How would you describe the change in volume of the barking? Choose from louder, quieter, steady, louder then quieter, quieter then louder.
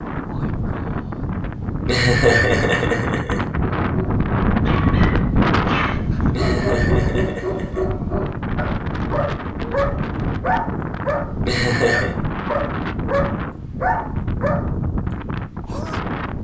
louder.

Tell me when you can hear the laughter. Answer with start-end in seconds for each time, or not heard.
1.9-3.4, 6.3-7.8, 11.4-12.1.